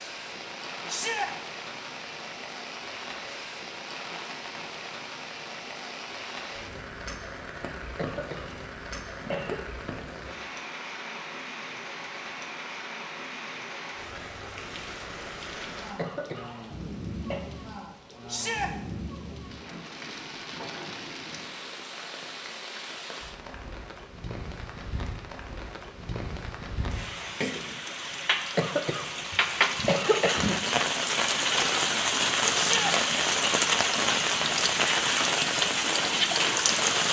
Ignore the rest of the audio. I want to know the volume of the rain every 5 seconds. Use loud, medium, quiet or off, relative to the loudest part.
quiet, quiet, quiet, quiet, quiet, medium, loud, loud.